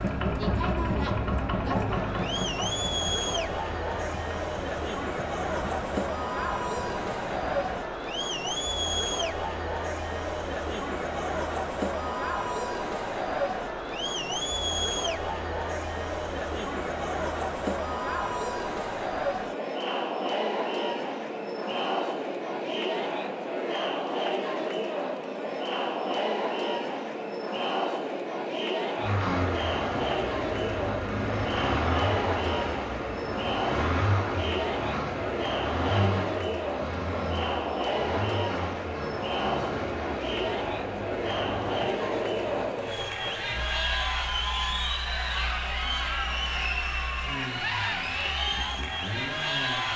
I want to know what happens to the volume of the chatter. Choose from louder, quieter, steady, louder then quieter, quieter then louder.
steady.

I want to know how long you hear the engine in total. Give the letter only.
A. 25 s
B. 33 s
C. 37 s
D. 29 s
D.